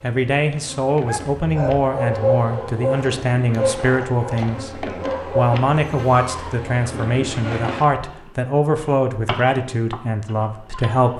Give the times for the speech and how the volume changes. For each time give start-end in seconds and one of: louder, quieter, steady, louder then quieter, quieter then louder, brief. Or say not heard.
0.0-11.1 steady.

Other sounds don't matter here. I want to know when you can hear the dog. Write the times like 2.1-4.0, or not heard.
1.1-6.6.